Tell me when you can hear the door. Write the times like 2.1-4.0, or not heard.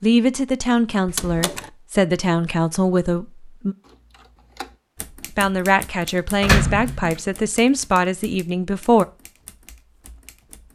1.1-1.6, 6.4-7.2.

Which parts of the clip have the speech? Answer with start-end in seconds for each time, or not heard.
0.0-3.8, 5.3-9.1.